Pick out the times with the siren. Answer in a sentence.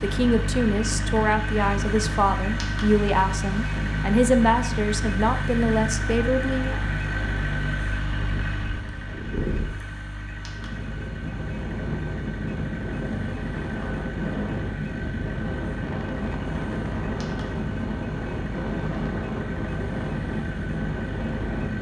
The siren can't be heard in this clip.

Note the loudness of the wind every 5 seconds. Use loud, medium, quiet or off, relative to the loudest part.
medium, medium, loud, loud, loud.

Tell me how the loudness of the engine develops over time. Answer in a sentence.
The loudness of the engine goes down.